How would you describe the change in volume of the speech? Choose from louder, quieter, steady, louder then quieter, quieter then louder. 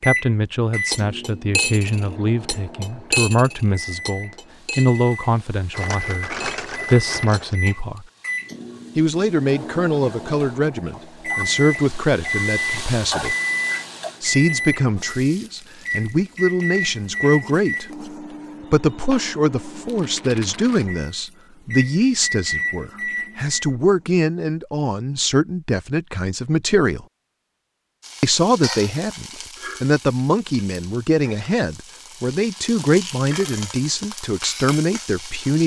steady.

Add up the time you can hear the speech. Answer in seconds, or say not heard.
32 s.